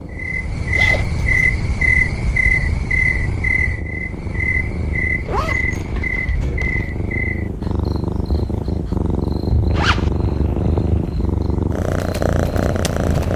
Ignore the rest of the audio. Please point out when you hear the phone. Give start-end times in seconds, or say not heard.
not heard.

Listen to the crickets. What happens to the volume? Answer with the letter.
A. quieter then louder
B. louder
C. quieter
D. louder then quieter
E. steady
A.